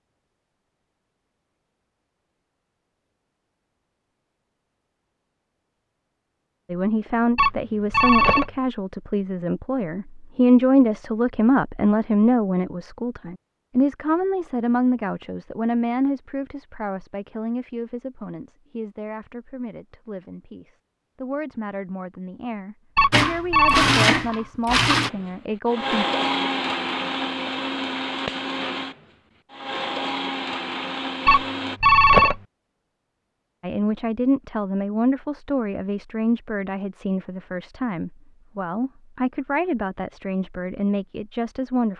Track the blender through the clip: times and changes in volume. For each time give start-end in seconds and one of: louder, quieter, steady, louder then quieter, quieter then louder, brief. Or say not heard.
23.1-31.8 quieter.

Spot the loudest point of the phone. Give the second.
32 s.